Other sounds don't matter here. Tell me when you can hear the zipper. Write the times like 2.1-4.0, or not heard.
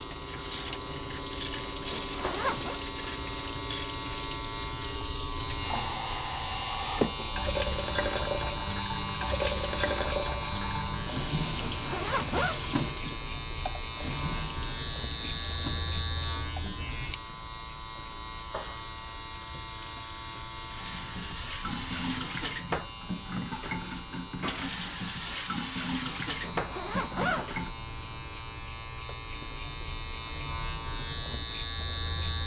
1.9-2.8, 11.6-12.6, 26.4-27.5.